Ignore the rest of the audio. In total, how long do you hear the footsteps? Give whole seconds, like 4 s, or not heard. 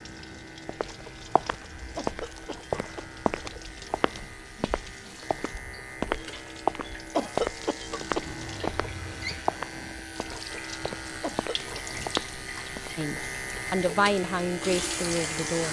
12 s.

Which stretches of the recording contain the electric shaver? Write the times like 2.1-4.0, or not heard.
0.0-15.6.